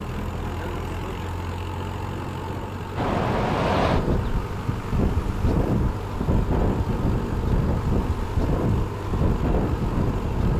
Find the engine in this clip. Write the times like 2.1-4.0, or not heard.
0.0-10.5.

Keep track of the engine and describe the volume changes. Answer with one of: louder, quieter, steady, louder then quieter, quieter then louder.
steady.